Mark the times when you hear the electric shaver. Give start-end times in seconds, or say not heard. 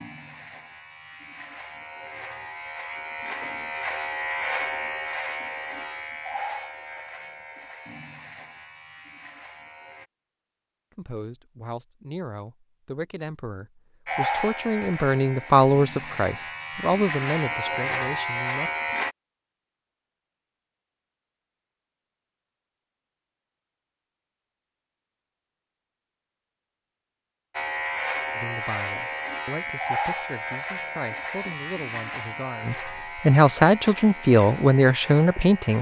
0.0-10.1, 14.1-19.1, 27.5-35.7.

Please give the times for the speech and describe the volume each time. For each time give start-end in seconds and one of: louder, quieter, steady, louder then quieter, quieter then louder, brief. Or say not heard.
10.9-18.7 louder then quieter
28.4-35.7 louder.